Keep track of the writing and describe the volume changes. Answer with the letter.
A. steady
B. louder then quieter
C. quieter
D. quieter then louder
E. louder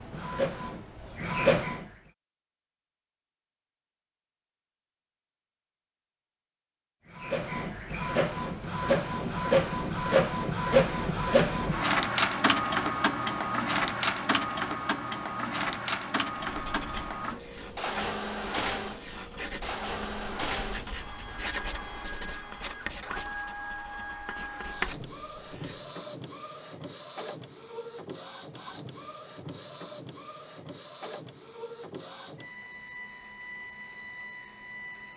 E.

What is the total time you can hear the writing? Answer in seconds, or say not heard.
9 s.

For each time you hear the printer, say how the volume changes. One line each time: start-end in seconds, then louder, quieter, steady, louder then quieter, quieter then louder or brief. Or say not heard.
0.0-2.0 brief
7.1-35.1 quieter.